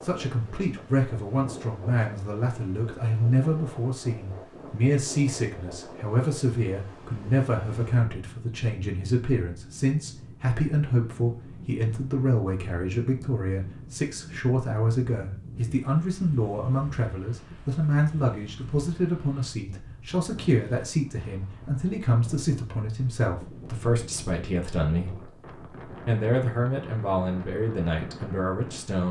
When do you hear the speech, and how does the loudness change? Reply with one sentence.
You can hear the speech from 0.0 to 29.0 s, at a steady volume.